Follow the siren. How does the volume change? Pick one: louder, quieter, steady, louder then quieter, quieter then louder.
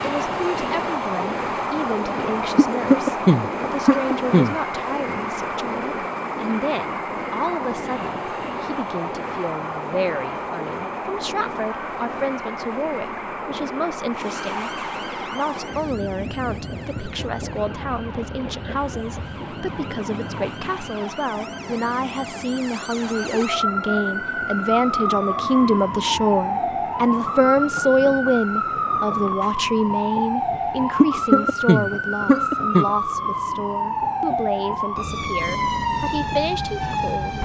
louder.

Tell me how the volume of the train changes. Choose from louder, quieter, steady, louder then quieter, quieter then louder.
quieter.